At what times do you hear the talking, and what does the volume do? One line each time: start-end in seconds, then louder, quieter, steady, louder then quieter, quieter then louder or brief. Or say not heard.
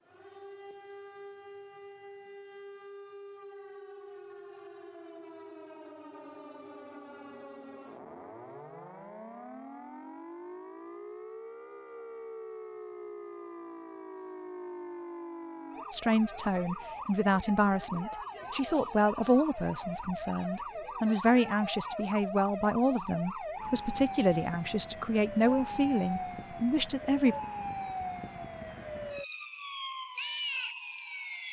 15.9-27.4 steady.